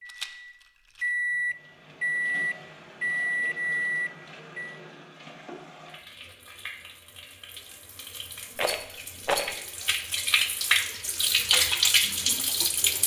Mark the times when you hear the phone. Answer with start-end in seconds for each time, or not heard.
not heard.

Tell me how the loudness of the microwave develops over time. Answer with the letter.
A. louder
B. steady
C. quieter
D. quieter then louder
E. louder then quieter
A.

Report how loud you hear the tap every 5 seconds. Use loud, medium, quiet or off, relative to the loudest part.
quiet, quiet, loud.